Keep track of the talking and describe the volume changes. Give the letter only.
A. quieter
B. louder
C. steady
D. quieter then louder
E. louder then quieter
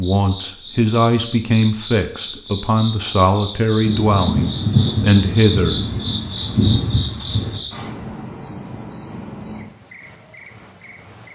C.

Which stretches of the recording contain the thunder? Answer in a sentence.
The thunder can be heard from 3.9 to 7.6 s.